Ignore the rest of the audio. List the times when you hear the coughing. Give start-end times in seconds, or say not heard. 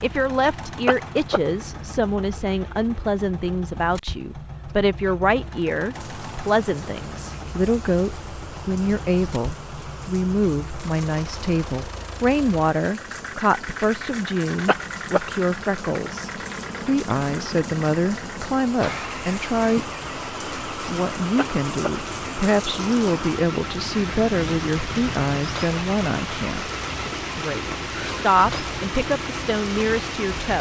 0.8-1.4, 14.7-15.2, 21.4-21.9.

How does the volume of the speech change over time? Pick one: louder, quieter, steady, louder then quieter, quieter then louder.
steady.